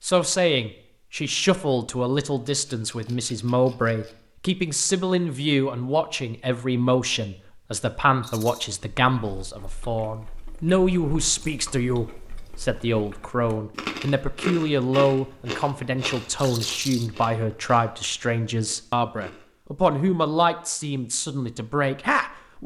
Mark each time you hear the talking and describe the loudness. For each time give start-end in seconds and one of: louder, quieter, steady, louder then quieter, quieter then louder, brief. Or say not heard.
0.0-22.6 steady.